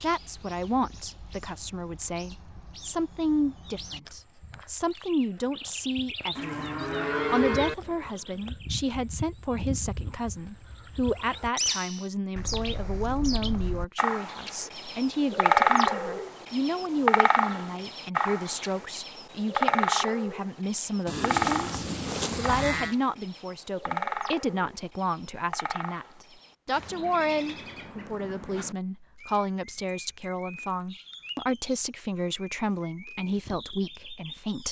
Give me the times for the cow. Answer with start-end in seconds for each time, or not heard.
6.3-7.8, 21.1-22.9.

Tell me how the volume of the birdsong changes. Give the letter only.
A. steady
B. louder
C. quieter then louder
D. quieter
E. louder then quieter
E.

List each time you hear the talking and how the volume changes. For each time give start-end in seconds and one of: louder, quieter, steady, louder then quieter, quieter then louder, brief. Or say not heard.
0.0-34.6 steady.